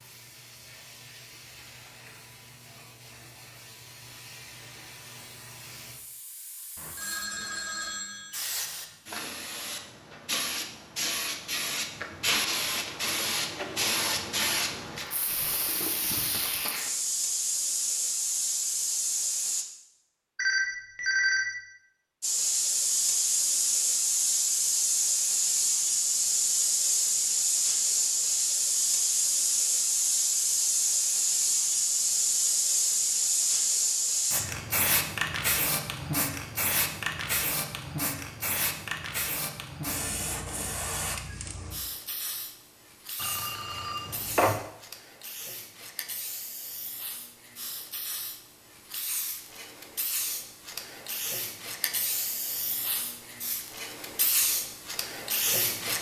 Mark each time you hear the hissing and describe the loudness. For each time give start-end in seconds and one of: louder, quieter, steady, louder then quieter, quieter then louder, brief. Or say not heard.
0.0-19.6 louder
22.2-55.9 quieter then louder.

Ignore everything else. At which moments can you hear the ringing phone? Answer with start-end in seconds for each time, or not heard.
6.8-8.4, 20.4-21.4, 43.2-44.6.